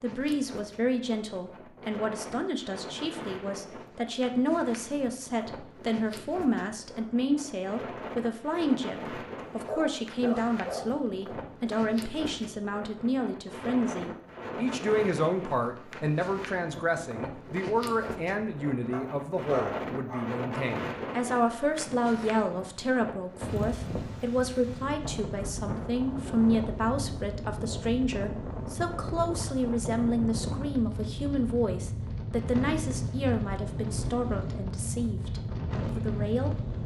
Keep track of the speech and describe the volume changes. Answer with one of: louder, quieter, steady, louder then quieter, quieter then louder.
steady.